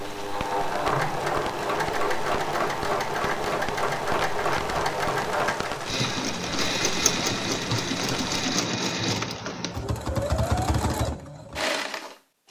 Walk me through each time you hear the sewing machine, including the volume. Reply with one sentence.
The sewing machine can be heard from 0.0 to 12.4 s, at a steady volume.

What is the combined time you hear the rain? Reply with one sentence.
The rain can be heard for 8 seconds in total.